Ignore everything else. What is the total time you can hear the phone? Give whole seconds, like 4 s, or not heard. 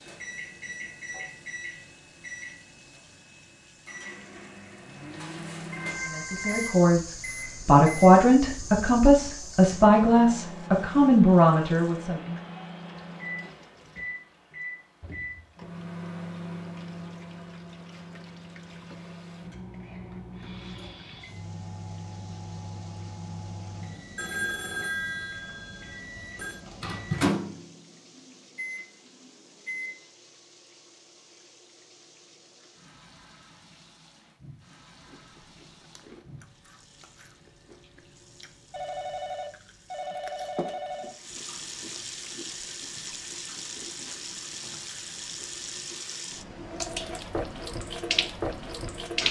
6 s.